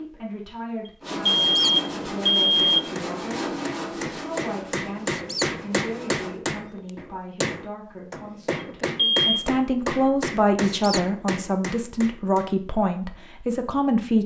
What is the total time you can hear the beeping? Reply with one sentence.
You can hear the beeping for 2 seconds altogether.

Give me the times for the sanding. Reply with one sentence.
The sanding can be heard from 1.0 to 6.4 s.